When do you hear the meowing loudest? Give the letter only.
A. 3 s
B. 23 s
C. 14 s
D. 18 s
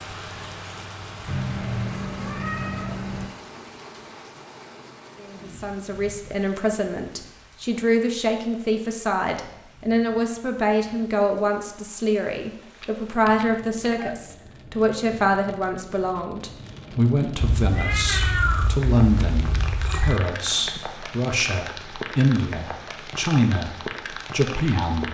D.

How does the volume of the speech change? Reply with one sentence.
The loudness of the speech stays about the same.